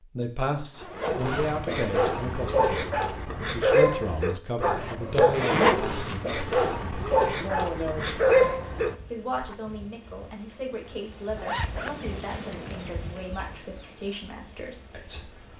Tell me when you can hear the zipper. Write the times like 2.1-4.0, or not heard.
0.5-1.6, 5.3-6.7, 11.3-12.8.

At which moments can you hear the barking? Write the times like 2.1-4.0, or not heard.
0.9-9.6.